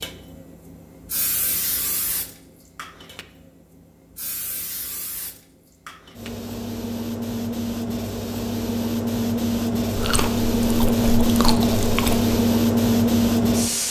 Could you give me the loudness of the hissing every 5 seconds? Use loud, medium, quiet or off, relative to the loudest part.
quiet, medium, loud.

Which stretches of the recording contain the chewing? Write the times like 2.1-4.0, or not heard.
9.9-12.3.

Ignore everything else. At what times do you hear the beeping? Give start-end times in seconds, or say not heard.
not heard.